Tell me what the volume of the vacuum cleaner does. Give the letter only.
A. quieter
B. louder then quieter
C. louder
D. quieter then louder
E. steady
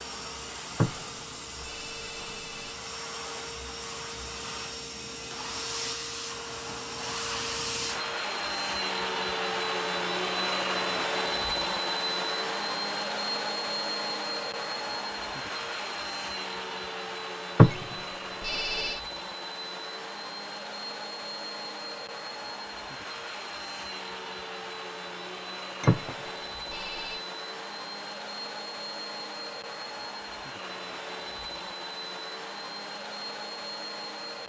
B.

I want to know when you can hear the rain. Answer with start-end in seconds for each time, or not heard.
not heard.